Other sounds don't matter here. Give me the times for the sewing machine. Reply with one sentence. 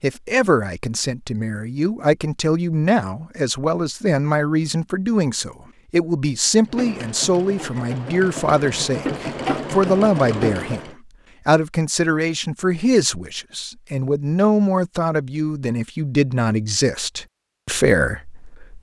You can hear the sewing machine from 6.7 to 10.9 s.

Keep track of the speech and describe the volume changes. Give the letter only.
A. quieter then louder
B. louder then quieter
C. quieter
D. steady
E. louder
D.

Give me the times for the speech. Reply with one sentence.
You can hear the speech from 0.0 to 18.7 s.